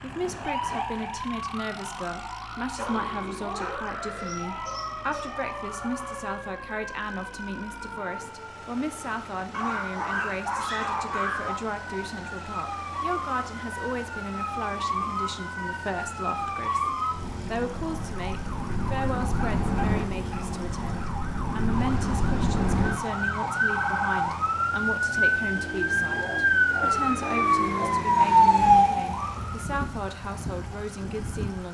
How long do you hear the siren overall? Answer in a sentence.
The siren can be heard for 32 seconds in total.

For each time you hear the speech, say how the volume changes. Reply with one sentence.
The speech can be heard from 0.0 to 31.7 s, at a steady volume.